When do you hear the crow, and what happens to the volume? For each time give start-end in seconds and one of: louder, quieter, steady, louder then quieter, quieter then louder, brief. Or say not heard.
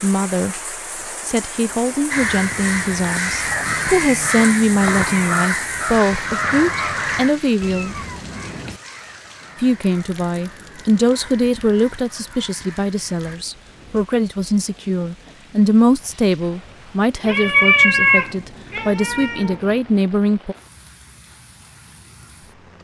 2.1-13.4 quieter.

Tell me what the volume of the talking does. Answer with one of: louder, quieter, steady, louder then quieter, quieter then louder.
steady.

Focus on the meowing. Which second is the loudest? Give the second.
18 s.